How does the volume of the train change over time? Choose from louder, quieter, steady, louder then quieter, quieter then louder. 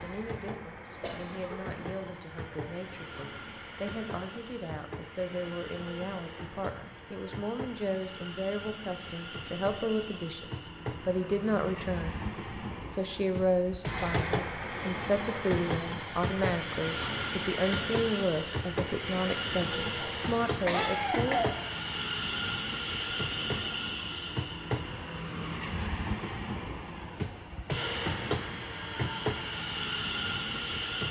louder.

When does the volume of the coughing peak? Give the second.
21 s.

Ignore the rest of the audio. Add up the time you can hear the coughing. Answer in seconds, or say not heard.
2 s.